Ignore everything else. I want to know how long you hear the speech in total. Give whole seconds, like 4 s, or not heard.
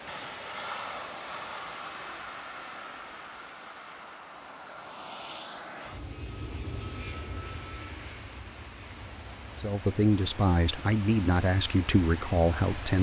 3 s.